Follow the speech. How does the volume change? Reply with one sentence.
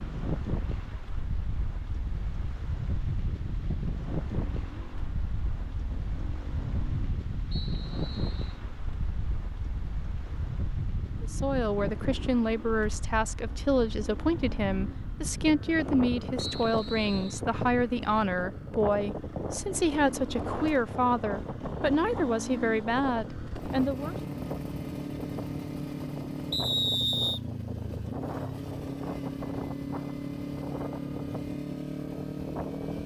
The volume of the speech stays about the same.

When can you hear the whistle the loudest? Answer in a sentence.
The loudest moment of the whistle is at 27 seconds.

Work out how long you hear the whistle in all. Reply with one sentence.
You can hear the whistle for 3 seconds altogether.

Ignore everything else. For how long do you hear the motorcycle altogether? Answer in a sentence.
The motorcycle can be heard for 33 seconds in total.